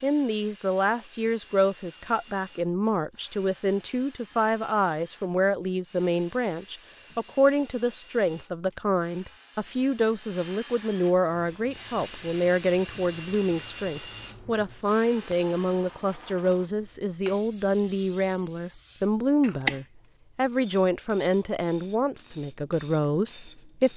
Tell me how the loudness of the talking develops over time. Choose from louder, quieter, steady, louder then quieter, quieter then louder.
steady.